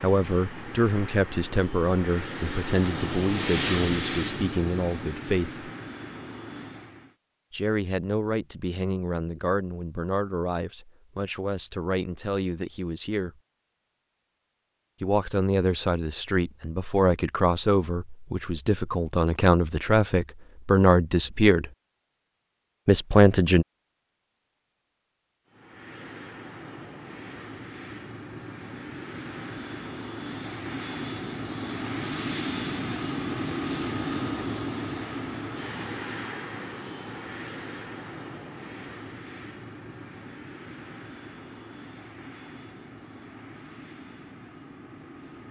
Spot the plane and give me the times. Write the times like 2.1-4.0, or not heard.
0.0-7.2, 25.4-45.4.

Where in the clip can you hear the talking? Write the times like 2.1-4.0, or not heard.
0.0-5.7, 7.5-13.3, 15.0-21.7, 22.9-23.6.